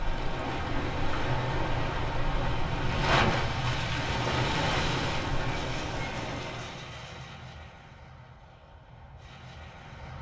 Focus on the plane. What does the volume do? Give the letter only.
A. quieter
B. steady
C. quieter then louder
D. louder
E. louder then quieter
A.